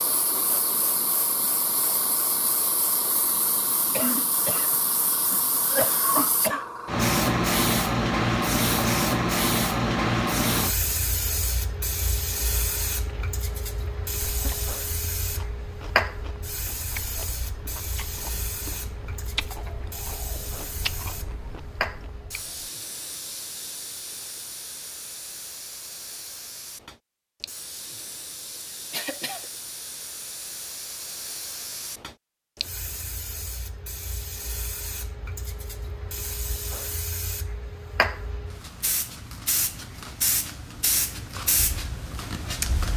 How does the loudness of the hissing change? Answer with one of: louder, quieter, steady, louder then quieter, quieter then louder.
quieter then louder.